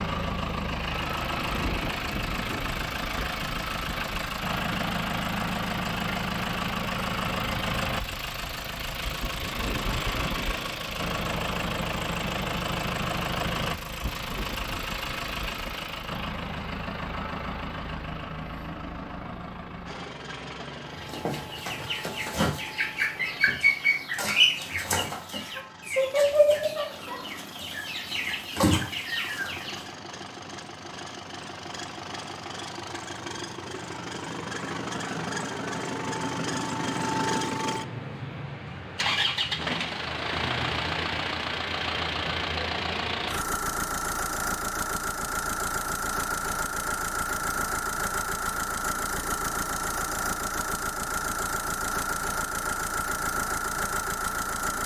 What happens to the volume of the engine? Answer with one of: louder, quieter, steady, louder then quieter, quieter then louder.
quieter then louder.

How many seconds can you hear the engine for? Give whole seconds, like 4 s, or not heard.
55 s.